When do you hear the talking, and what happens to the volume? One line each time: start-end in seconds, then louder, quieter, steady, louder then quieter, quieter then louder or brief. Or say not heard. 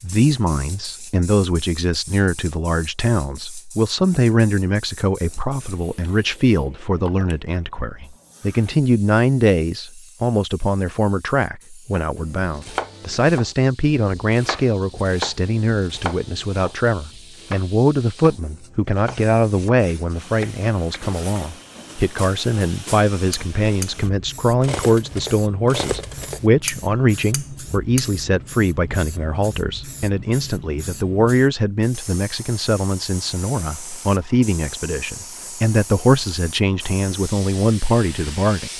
0.0-38.7 steady.